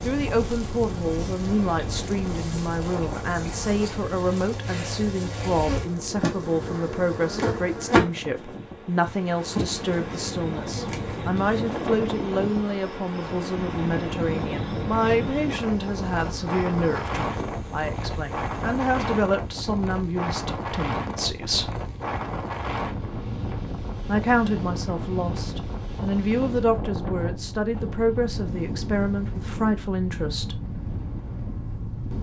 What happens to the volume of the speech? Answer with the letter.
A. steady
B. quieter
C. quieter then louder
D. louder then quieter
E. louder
A.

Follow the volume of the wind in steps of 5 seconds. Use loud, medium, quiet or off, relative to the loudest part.
loud, medium, loud, loud, loud, loud, loud.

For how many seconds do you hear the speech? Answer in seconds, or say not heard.
28 s.